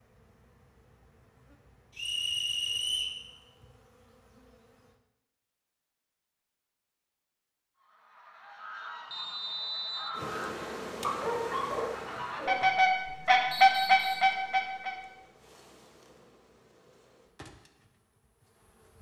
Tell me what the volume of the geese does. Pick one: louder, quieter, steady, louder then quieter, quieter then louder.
louder.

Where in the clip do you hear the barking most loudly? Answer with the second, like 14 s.
11 s.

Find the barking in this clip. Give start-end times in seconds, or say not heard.
11.0-12.7.